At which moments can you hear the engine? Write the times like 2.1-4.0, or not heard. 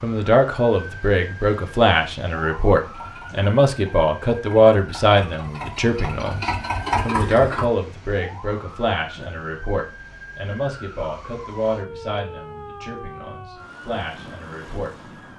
2.8-7.7.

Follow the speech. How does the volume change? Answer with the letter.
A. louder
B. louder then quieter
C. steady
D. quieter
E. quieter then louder
D.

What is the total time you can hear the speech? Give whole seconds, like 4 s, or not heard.
15 s.